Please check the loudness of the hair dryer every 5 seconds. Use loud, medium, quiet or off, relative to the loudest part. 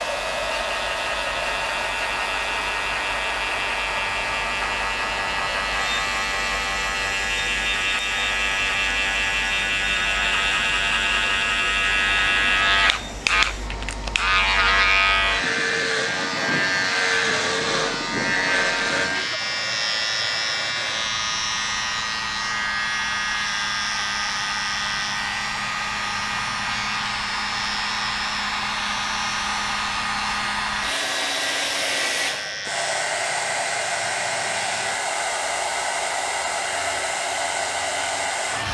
loud, medium, medium, medium, medium, loud, loud, loud.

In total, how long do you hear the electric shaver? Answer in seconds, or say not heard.
39 s.